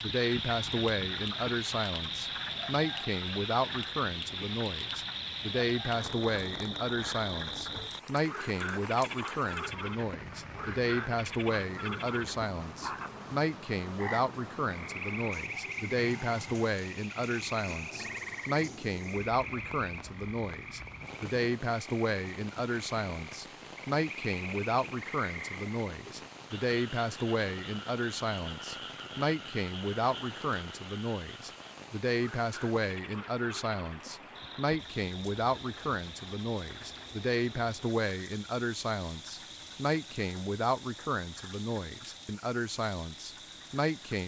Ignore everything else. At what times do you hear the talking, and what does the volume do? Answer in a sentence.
You can hear the talking from 0.0 to 44.2 s, at a steady volume.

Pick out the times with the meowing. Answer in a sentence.
The meowing can't be heard in this clip.